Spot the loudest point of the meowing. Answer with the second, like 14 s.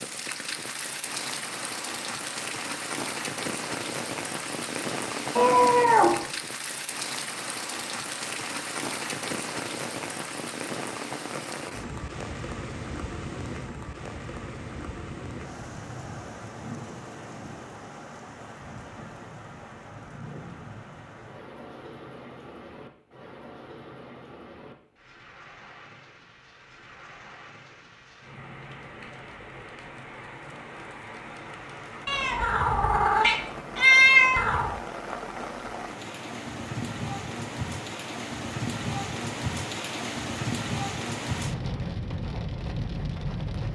34 s.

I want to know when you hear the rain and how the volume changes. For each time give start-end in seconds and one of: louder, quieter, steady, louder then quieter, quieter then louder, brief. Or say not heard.
0.0-43.7 quieter then louder.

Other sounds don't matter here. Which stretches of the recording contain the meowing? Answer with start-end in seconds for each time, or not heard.
5.3-6.2, 32.0-34.8.